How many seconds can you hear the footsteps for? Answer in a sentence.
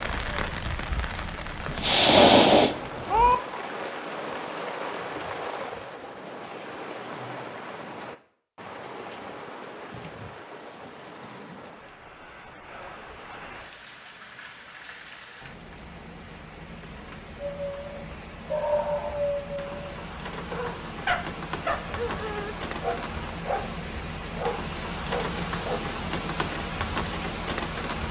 The footsteps can't be heard in this clip.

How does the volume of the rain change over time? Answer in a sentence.
The loudness of the rain goes down, then up.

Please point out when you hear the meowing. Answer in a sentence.
The meowing can be heard from 1.6 to 3.4 s.